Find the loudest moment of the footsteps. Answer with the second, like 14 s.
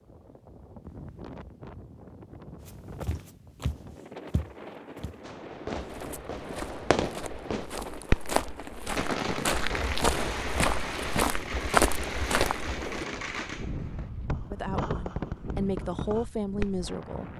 12 s.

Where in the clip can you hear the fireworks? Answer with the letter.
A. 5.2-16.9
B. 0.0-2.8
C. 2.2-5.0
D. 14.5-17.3
A.